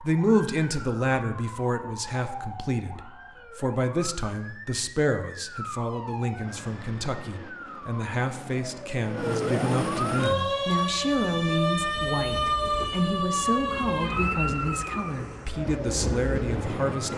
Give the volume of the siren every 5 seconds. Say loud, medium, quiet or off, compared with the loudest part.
quiet, medium, loud, medium.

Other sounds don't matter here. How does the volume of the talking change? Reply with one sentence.
The volume of the talking stays about the same.